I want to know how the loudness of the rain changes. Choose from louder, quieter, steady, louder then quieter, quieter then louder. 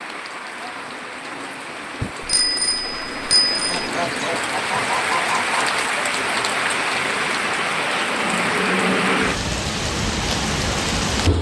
louder.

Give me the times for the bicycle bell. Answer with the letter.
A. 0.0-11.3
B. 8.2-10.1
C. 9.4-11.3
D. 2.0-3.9
D.